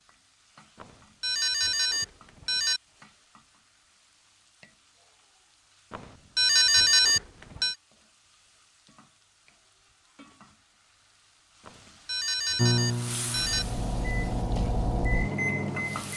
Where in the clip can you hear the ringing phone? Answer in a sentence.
The ringing phone can be heard from 0.8 to 2.8 s, from 5.9 to 7.8 s and from 11.7 to 13.7 s.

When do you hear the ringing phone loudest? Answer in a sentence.
The volume of the ringing phone peaks at 7 seconds.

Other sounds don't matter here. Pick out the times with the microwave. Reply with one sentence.
The microwave can be heard from 12.6 to 16.1 s.